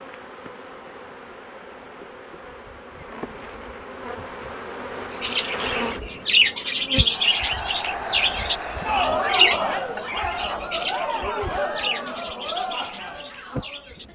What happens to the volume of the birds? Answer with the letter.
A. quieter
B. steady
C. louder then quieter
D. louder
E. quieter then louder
A.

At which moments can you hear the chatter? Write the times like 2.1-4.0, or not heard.
7.0-14.1.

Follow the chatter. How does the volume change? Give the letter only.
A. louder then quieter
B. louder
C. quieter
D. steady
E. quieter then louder
A.